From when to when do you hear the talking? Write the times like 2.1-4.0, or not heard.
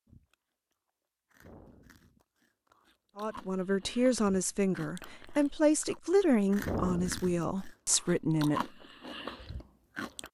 3.1-8.6.